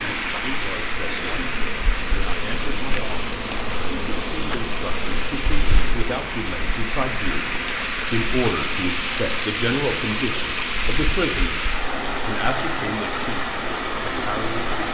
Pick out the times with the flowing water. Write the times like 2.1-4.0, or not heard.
0.0-14.9.